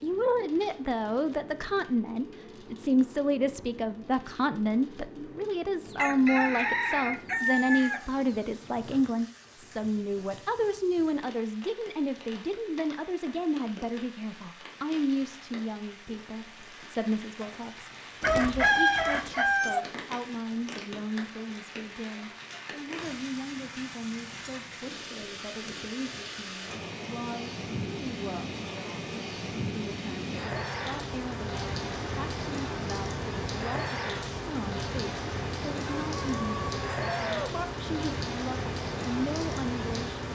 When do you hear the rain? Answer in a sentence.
You can hear the rain from 0.0 to 40.3 s.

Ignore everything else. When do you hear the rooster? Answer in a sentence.
You can hear the rooster from 5.8 to 9.1 s, from 18.2 to 19.9 s and from 35.9 to 37.6 s.